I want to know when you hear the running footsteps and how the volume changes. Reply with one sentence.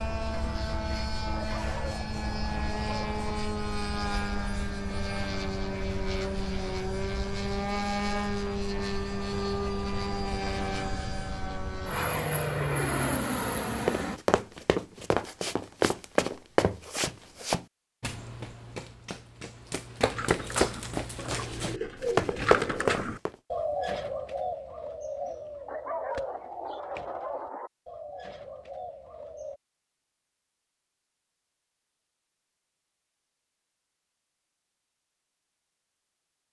You can hear the running footsteps from 13.8 to 23.4 s, getting quieter then louder.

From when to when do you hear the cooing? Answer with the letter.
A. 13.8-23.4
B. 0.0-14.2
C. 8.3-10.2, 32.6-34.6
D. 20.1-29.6
D.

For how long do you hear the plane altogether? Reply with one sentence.
You can hear the plane for 14 seconds altogether.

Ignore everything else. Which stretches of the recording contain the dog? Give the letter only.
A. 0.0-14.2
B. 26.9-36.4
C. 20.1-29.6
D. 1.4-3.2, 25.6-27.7
D.